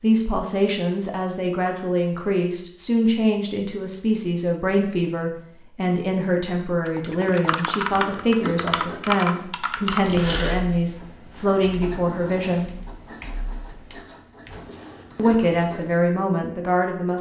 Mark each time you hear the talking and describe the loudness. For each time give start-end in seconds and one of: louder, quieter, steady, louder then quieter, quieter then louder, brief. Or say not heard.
0.0-12.7 steady
15.2-17.1 brief.